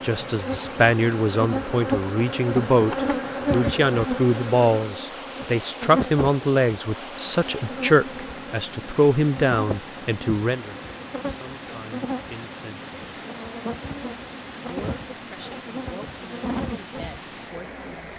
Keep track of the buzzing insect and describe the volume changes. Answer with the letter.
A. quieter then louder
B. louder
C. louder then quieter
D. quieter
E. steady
D.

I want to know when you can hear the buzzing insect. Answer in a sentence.
You can hear the buzzing insect from 0.0 to 18.1 s.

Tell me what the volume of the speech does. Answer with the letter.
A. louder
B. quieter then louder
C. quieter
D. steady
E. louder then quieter
C.